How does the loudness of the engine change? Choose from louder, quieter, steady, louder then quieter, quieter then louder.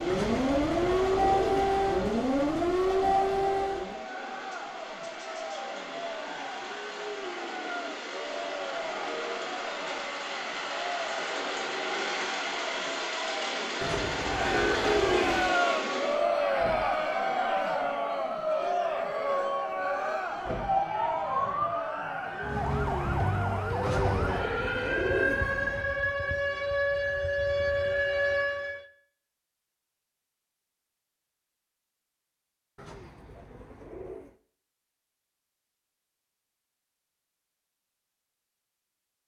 louder.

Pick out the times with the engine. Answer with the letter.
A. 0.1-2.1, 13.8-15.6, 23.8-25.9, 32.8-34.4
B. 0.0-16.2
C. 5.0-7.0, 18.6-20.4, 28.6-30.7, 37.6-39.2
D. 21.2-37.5
B.